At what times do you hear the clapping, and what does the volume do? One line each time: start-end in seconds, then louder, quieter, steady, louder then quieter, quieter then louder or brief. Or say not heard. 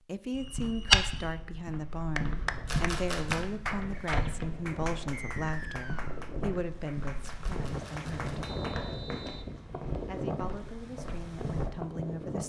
2.1-8.8 quieter.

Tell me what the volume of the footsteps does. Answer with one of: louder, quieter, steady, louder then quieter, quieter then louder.
quieter.